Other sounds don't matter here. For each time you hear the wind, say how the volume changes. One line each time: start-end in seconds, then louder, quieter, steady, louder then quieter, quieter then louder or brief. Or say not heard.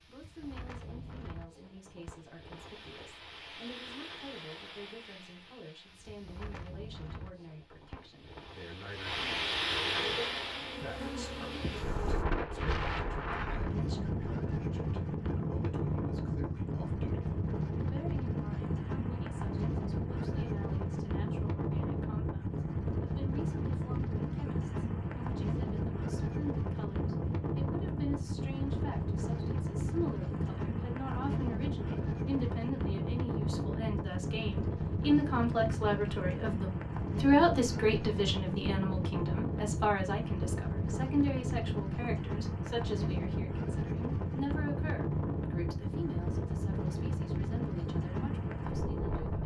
0.0-49.4 louder.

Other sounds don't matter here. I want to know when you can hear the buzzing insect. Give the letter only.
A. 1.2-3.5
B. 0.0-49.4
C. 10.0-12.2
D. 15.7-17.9
C.